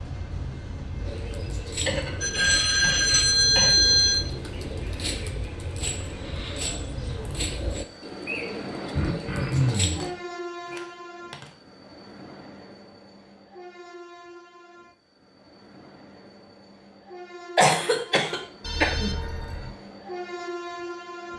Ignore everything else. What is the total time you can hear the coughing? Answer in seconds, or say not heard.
5 s.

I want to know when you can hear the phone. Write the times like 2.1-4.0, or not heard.
2.2-4.2, 9.7-11.6, 18.6-19.8.